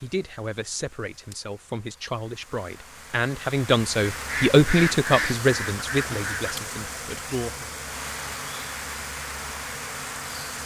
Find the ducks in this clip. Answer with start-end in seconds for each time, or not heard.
4.1-6.6.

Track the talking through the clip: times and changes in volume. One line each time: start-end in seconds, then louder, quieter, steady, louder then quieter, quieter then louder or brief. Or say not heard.
0.0-7.7 louder then quieter.